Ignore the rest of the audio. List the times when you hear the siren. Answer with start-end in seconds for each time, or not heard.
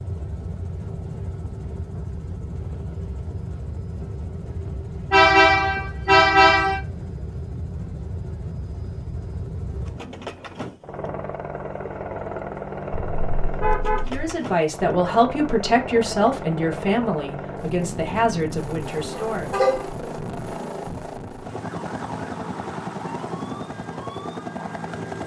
21.6-25.0.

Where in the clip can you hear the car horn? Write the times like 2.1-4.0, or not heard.
5.1-6.8, 13.2-14.3, 19.1-19.9.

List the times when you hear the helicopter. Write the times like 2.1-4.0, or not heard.
0.0-25.2.